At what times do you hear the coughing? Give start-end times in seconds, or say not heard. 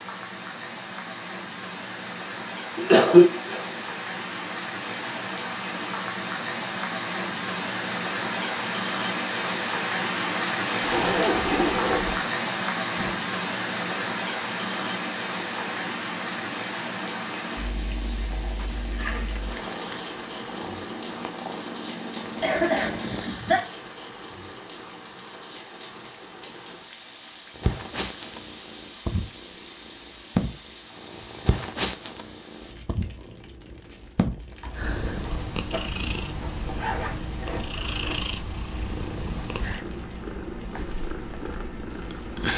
2.8-3.6, 22.4-23.6, 34.6-35.9.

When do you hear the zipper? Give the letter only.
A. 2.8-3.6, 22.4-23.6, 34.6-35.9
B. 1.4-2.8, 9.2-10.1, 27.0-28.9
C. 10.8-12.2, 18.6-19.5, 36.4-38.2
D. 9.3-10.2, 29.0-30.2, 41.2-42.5
C.